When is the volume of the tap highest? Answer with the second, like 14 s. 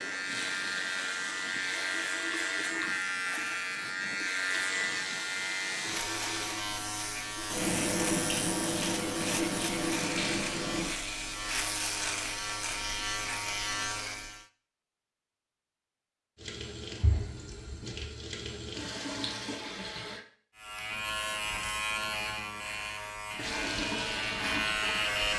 8 s.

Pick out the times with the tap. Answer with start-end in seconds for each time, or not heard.
0.2-10.9, 16.4-20.2, 23.4-25.3.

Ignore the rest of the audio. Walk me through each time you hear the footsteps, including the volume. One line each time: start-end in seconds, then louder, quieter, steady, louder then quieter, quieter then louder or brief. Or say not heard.
not heard.